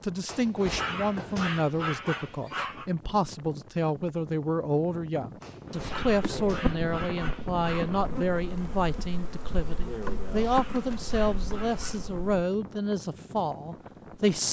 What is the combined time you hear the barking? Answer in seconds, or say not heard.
7 s.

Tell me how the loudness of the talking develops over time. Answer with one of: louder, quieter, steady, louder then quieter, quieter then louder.
steady.